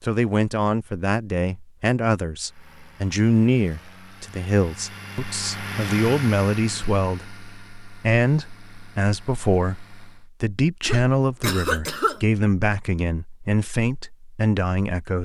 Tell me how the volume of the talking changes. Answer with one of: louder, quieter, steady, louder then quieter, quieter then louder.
steady.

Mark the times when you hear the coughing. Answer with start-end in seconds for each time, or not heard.
10.8-12.2.